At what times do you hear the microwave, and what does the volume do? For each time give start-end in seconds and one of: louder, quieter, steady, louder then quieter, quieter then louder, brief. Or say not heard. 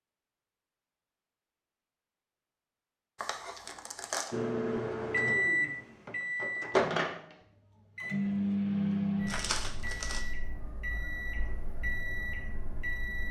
4.3-13.2 quieter.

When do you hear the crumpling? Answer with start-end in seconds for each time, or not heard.
3.1-4.3, 9.2-10.2.